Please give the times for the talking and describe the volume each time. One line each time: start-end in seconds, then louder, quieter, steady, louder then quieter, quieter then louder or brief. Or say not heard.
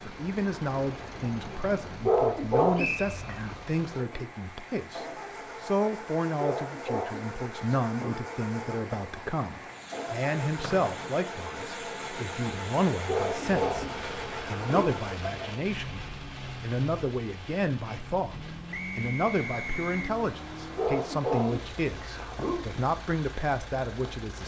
0.0-24.4 steady.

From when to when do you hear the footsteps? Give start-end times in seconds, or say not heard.
not heard.